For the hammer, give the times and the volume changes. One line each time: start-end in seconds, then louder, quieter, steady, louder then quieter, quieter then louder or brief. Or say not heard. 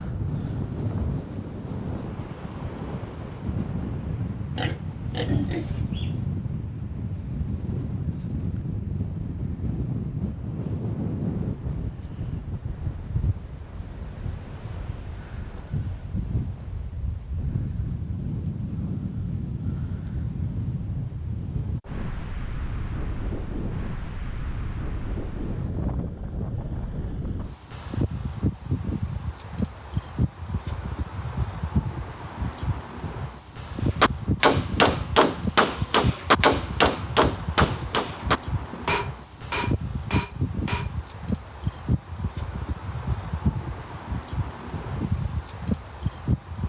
34.0-40.9 quieter.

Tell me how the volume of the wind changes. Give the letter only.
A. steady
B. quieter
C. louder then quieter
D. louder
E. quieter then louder
A.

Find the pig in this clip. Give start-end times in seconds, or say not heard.
4.5-6.2.